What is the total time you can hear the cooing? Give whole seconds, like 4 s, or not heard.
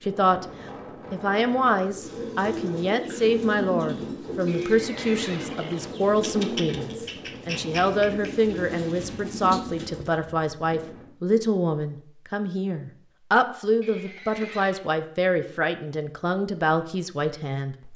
8 s.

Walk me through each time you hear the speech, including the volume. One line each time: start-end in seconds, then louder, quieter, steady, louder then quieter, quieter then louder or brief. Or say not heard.
0.0-0.5 brief
1.1-17.9 steady.